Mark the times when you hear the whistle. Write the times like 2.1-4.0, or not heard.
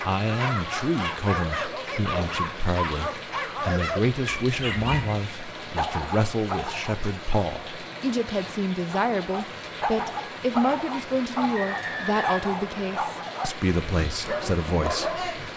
11.6-13.0.